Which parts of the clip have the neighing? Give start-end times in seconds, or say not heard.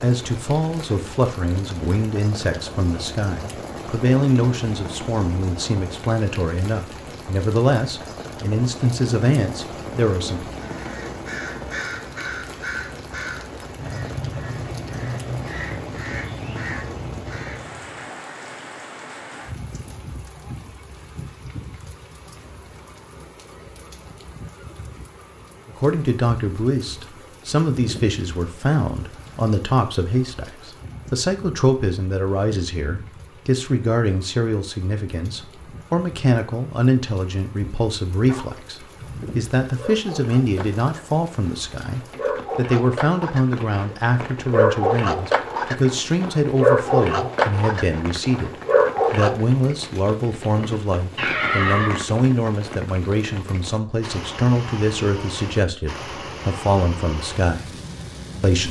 50.5-52.0.